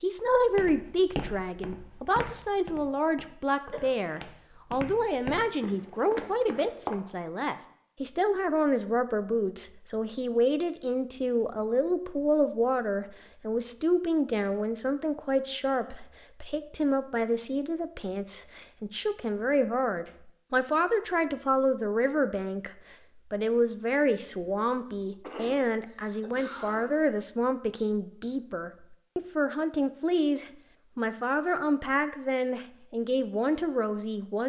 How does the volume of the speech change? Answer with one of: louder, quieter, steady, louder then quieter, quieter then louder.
steady.